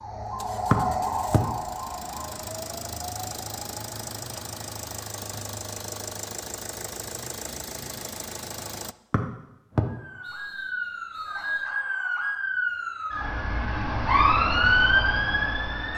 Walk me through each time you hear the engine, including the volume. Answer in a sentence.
You can hear the engine from 0.2 to 8.9 s, getting louder.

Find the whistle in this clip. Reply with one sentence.
The whistle can be heard from 0.7 to 1.4 s and from 9.1 to 11.7 s.